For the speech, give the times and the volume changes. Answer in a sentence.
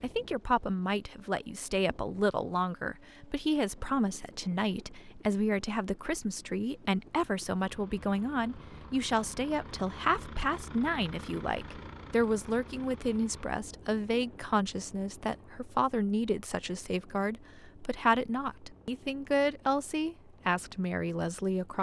The speech can be heard from 0.0 to 21.7 s, at a steady volume.